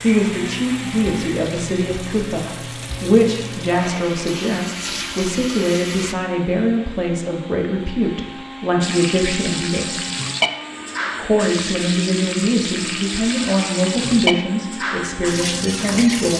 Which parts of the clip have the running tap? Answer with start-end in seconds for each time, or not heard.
0.0-6.2, 8.8-16.3.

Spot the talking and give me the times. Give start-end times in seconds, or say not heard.
0.0-10.1, 11.2-16.3.